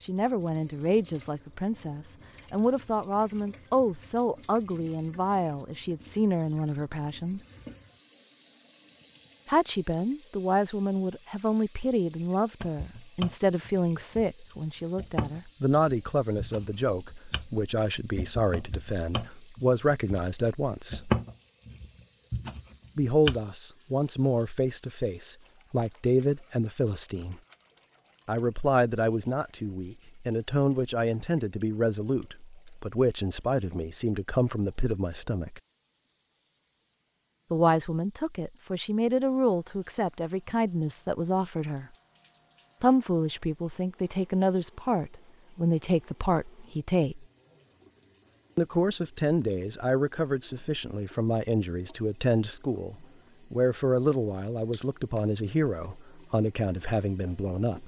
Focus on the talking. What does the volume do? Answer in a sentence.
The loudness of the talking stays about the same.